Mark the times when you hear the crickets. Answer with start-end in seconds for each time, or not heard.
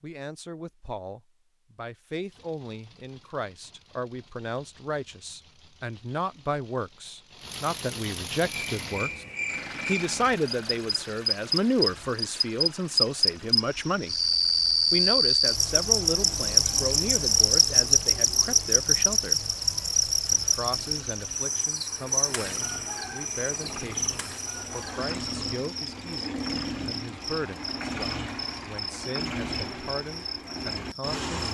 8.4-31.2.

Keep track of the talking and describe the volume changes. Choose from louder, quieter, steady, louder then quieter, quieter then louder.
louder then quieter.